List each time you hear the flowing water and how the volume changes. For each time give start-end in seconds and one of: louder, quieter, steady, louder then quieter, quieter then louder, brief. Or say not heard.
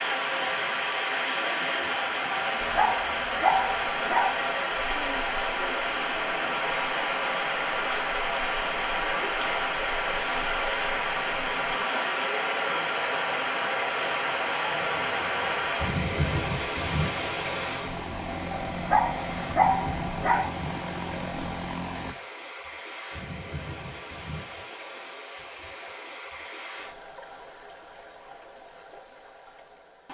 0.0-30.0 quieter.